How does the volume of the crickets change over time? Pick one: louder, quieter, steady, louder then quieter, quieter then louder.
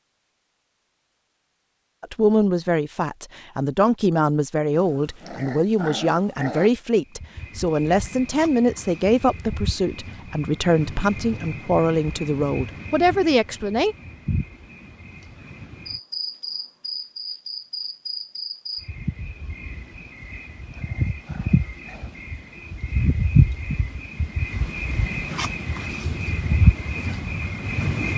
louder.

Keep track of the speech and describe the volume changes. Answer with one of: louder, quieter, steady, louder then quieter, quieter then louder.
steady.